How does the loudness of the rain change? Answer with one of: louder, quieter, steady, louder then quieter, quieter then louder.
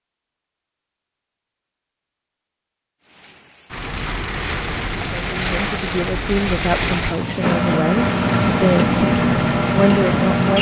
louder.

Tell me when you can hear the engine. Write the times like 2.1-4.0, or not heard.
7.4-10.5.